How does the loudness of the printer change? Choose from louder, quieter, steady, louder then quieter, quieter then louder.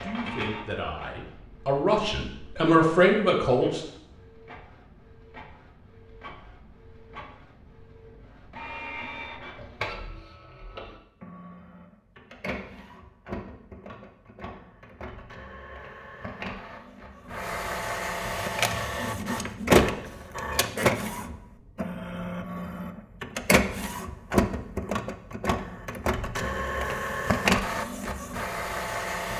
louder.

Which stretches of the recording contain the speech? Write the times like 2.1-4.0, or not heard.
0.0-3.9.